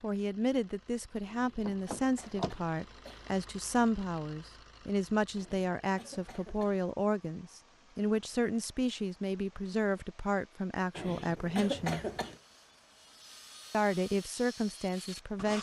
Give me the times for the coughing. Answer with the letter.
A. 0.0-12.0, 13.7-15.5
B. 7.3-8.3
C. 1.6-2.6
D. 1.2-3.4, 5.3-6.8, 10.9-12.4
D.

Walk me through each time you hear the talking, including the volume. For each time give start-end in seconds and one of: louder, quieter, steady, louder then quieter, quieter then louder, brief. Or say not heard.
0.0-12.0 steady
13.7-15.5 brief.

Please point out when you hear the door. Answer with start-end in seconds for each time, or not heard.
1.6-2.6.